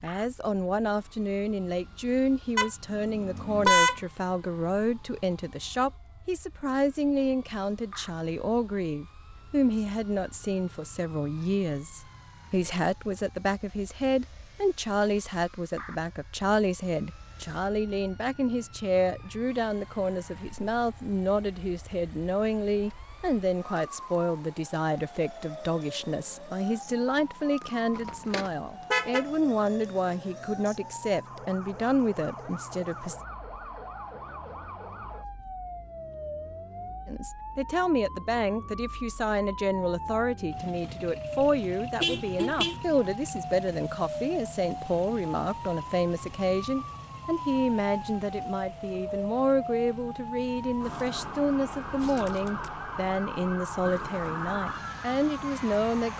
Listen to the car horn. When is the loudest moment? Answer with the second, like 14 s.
4 s.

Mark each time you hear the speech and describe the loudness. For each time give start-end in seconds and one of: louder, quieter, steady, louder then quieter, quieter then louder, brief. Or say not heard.
0.0-33.2 steady
37.0-56.1 steady.